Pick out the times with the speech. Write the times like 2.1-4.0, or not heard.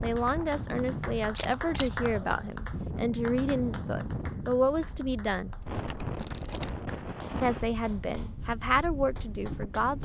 0.0-5.5, 7.4-9.9.